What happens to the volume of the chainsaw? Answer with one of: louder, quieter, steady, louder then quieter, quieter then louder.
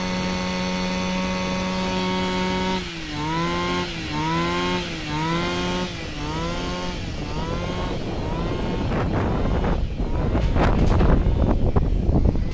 quieter.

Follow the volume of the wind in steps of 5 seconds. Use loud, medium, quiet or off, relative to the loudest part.
quiet, medium, loud.